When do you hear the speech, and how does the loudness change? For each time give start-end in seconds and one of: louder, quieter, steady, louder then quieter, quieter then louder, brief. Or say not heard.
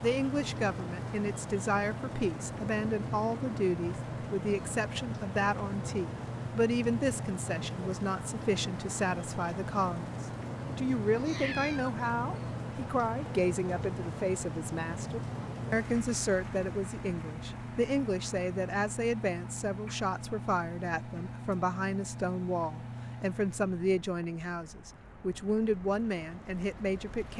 0.0-27.3 steady.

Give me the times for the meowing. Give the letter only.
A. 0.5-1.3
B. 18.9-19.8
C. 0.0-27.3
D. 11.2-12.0
D.